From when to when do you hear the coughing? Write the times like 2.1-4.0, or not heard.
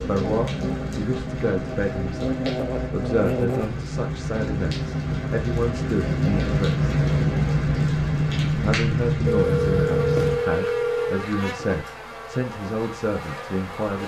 not heard.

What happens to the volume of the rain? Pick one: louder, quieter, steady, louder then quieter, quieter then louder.
louder.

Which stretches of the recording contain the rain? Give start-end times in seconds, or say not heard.
0.0-10.4.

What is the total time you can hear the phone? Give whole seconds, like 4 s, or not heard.
2 s.